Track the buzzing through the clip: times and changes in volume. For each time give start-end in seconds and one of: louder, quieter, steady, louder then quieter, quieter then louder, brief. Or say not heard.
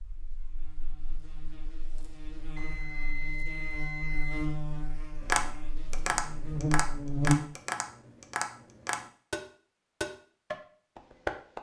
0.0-7.4 louder.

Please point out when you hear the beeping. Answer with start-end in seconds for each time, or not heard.
2.5-4.5.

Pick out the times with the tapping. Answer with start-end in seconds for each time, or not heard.
5.2-11.5.